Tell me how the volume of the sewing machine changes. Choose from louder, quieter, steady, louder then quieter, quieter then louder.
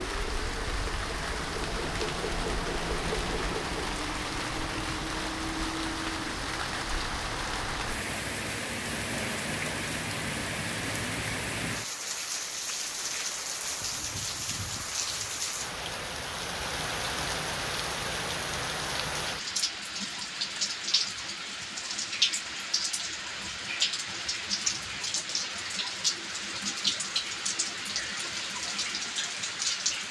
louder.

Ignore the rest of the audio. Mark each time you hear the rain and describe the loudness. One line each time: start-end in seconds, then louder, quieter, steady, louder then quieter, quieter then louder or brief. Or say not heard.
0.0-30.0 steady.